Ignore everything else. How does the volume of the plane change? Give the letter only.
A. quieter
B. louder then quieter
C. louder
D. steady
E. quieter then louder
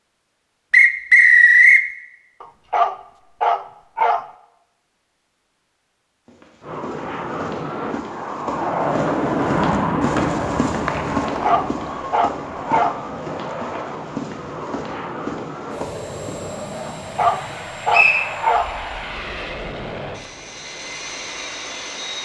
A.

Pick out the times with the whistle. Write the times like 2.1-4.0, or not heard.
0.7-1.9, 10.2-11.5, 17.9-18.3.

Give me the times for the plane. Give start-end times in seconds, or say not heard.
6.6-22.2.